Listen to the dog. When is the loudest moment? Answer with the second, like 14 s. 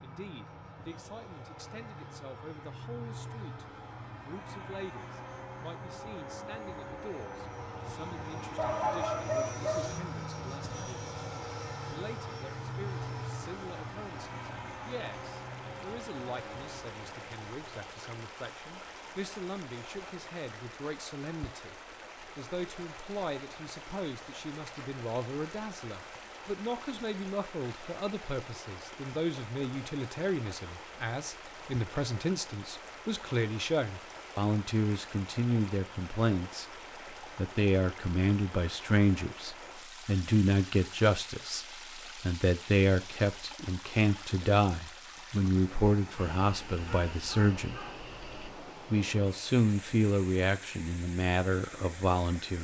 9 s.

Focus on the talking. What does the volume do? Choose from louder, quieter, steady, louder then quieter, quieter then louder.
louder.